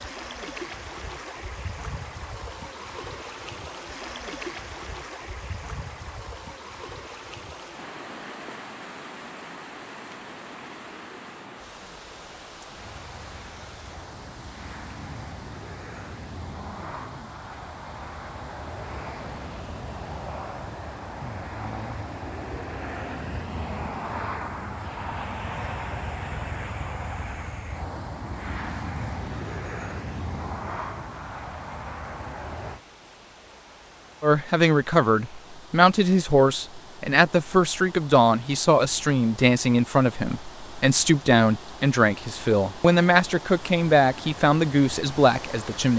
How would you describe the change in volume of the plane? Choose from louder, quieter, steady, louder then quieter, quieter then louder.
louder.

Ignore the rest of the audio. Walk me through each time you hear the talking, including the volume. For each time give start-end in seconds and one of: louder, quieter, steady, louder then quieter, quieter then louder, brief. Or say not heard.
34.2-45.9 steady.